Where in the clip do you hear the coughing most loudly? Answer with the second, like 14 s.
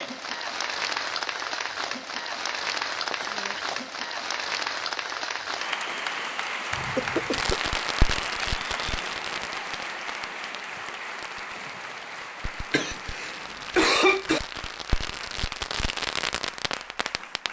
14 s.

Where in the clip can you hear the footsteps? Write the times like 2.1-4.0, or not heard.
not heard.